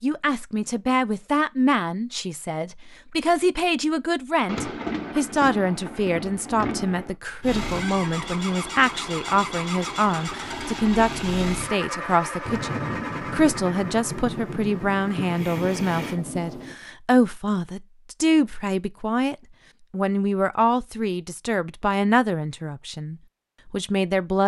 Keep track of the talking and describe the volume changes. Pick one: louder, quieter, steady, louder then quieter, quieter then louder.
steady.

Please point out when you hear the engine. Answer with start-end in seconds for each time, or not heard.
7.4-16.1.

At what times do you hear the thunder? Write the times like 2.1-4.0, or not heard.
4.5-7.2, 12.4-16.8.